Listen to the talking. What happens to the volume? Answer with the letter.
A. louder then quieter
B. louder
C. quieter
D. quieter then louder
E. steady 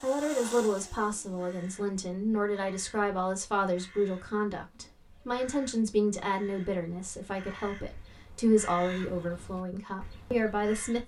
E.